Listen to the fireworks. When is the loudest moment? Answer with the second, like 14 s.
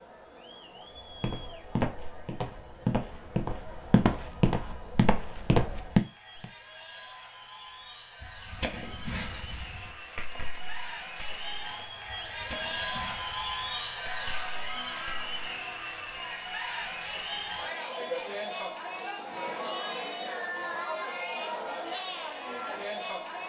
9 s.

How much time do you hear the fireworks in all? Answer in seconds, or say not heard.
7 s.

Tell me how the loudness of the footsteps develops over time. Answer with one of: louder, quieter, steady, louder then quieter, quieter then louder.
louder.